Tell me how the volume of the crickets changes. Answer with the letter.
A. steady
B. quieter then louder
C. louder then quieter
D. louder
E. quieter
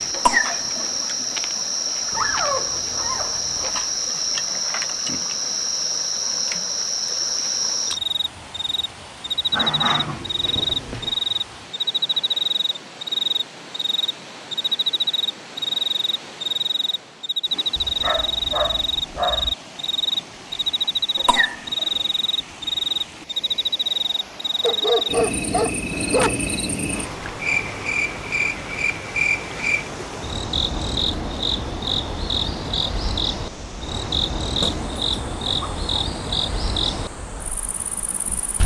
A.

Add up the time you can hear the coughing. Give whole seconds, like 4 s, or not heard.
2 s.